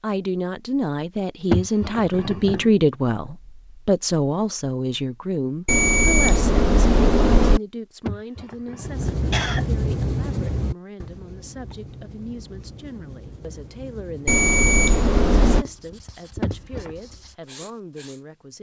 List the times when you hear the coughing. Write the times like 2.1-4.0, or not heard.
1.5-2.7, 8.1-9.7, 16.4-17.0.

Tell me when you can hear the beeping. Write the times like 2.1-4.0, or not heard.
5.7-7.6, 14.2-15.7.